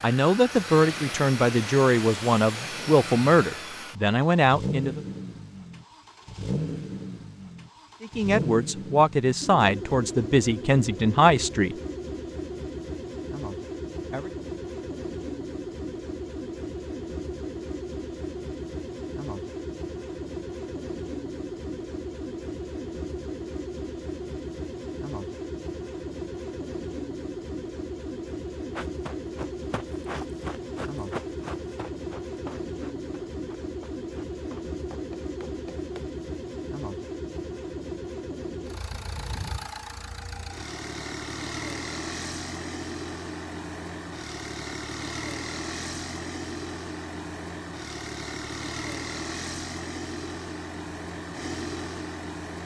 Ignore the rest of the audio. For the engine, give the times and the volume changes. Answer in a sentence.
The engine can be heard from 0.0 to 52.6 s, at a steady volume.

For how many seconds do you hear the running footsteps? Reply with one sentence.
You can hear the running footsteps for 7 seconds altogether.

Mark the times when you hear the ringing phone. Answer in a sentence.
You can't hear the ringing phone here.